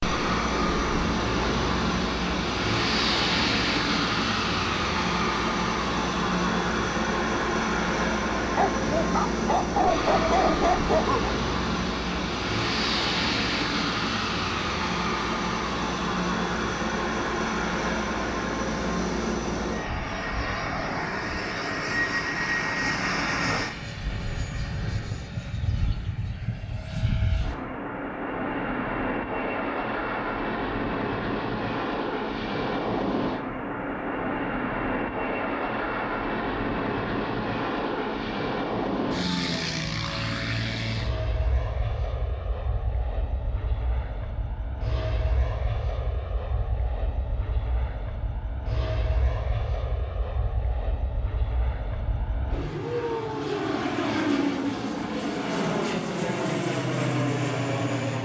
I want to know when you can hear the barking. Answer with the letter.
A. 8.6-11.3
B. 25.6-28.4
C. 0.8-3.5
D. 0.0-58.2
A.